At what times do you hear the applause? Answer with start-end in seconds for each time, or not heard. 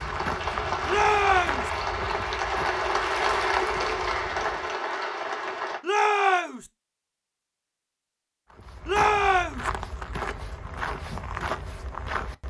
0.0-5.8.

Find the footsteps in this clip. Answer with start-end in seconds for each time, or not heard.
0.0-4.7, 8.5-12.4.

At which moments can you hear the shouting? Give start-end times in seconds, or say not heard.
0.8-1.7, 5.8-6.7, 8.8-9.7.